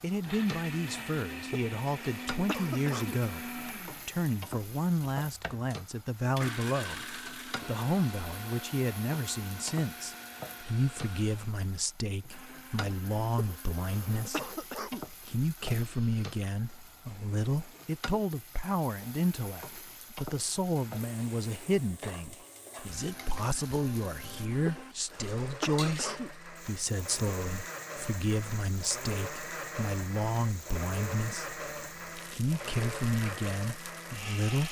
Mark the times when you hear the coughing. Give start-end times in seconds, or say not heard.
1.5-3.2, 13.3-15.1, 24.6-26.3.